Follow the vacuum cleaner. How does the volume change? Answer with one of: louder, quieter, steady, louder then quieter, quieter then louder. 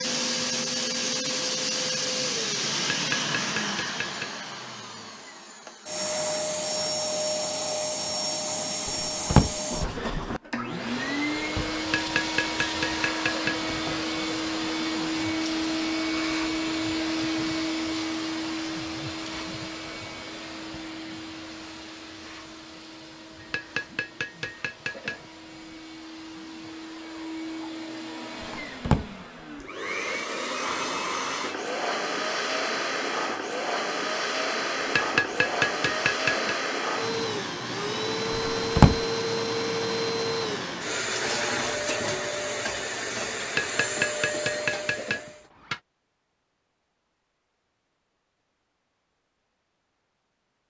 quieter then louder.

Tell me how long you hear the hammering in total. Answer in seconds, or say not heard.
9 s.